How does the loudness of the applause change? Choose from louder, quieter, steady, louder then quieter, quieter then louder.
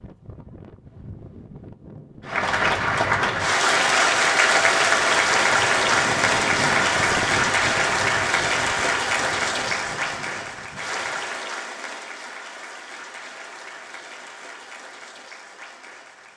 quieter.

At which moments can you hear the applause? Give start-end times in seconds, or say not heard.
2.2-16.3.